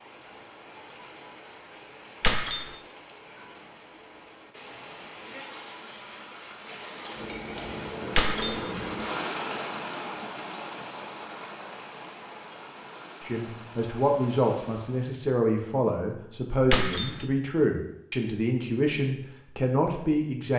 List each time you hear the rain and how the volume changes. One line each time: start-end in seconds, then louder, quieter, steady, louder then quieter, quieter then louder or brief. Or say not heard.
0.0-15.2 louder then quieter.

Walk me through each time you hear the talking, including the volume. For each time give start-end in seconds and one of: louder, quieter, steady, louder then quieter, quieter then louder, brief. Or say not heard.
13.2-20.5 steady.